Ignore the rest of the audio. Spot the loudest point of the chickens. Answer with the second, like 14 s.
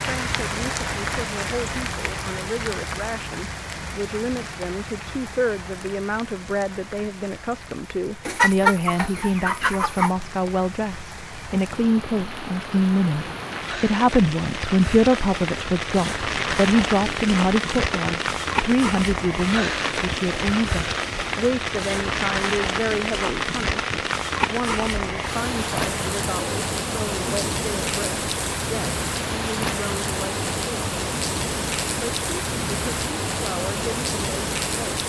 9 s.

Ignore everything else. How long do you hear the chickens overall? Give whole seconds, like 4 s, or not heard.
2 s.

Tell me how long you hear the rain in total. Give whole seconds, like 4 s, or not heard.
35 s.